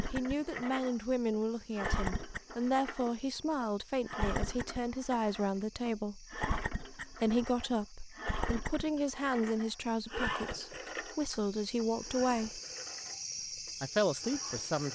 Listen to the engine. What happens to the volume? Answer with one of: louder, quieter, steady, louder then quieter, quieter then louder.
quieter.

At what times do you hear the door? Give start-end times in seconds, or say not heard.
not heard.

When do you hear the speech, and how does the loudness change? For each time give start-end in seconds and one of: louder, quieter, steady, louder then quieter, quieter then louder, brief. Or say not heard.
0.1-12.6 steady
13.8-14.8 brief.